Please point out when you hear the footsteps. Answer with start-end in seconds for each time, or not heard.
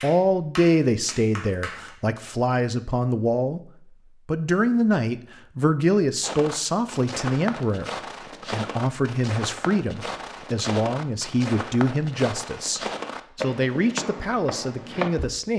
6.2-15.4.